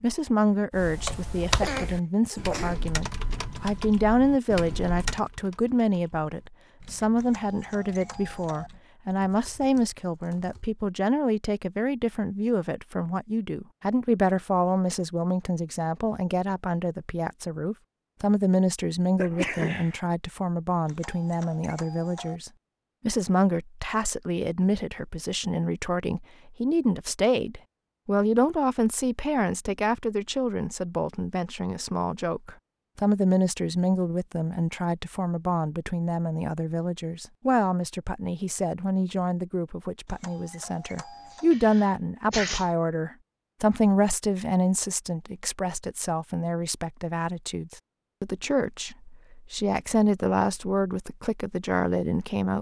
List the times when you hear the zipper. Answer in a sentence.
The zipper can't be heard in this clip.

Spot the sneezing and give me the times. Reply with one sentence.
You can hear the sneezing from 1.4 to 2.9 s, from 19.1 to 19.9 s and from 41.3 to 42.6 s.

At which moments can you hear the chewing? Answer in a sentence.
You can't hear the chewing here.